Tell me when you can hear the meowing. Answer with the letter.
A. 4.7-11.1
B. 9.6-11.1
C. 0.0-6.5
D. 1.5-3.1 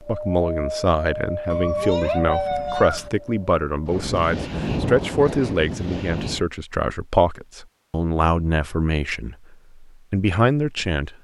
D.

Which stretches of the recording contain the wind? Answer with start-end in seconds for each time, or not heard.
0.0-6.5.